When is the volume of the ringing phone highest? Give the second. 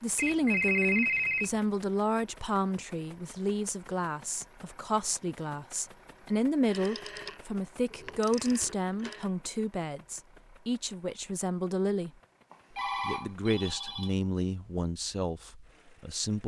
1 s.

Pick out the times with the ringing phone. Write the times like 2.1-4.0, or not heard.
0.1-1.6, 6.7-9.2, 12.5-14.2.